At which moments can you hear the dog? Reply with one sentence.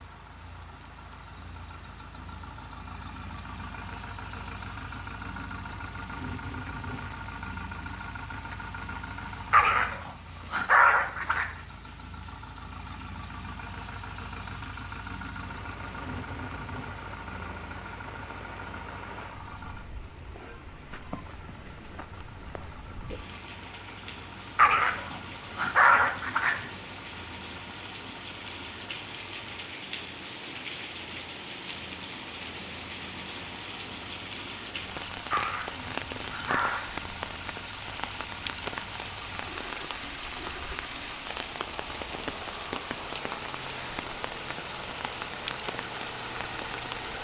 You can hear the dog from 9.5 to 11.4 s, from 24.6 to 26.6 s and from 35.3 to 36.9 s.